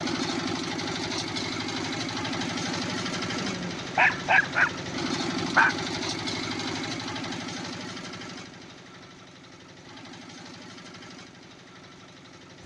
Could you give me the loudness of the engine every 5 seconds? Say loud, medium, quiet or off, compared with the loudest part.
loud, loud, quiet.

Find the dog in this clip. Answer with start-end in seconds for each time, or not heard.
3.4-5.8.